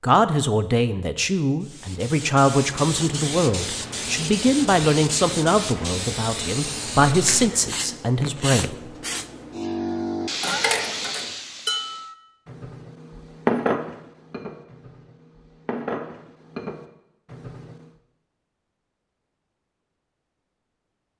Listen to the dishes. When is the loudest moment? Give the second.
14 s.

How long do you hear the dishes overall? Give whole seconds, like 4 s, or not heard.
7 s.